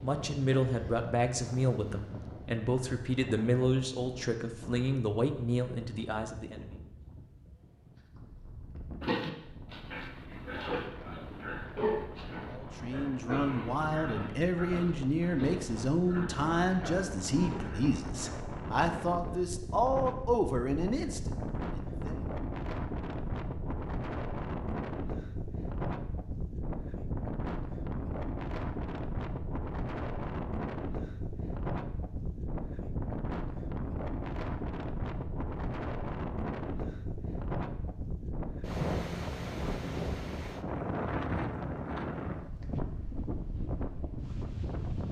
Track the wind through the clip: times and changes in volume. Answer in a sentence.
The wind can be heard from 0.0 to 45.0 s, getting louder.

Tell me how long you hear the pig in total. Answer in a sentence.
The pig can be heard for 9 seconds in total.